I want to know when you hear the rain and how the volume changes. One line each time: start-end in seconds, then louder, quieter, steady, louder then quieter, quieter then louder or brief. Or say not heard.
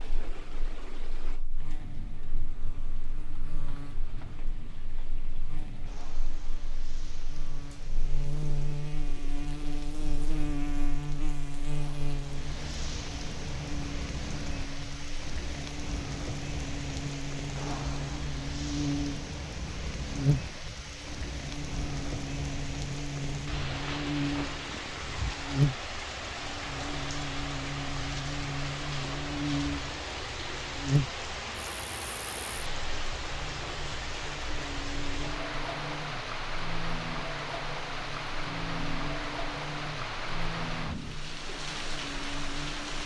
0.0-43.0 louder.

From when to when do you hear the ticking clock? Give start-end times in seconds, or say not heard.
not heard.